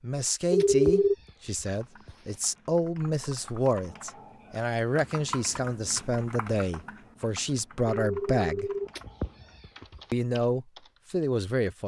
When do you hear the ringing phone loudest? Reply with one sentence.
The volume of the ringing phone peaks at 1 second.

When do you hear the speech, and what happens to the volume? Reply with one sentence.
The speech can be heard from 0.0 to 8.7 s, at a steady volume; and briefly from 10.1 to 11.8 s.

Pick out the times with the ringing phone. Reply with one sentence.
The ringing phone can be heard from 0.5 to 1.1 s and from 8.0 to 8.9 s.